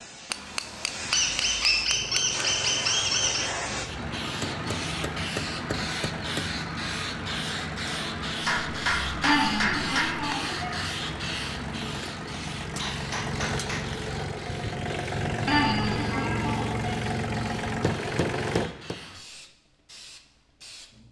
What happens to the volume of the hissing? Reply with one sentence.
The volume of the hissing goes down.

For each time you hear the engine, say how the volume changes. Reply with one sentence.
The engine can be heard from 1.9 to 18.7 s, getting louder.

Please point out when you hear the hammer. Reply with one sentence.
The hammer can be heard from 0.3 to 2.5 s, from 4.4 to 6.5 s, from 8.4 to 10.2 s, from 12.8 to 14.1 s and from 17.6 to 18.9 s.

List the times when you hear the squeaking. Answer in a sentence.
You can hear the squeaking from 1.1 to 3.5 s, from 9.2 to 10.7 s and from 15.4 to 16.9 s.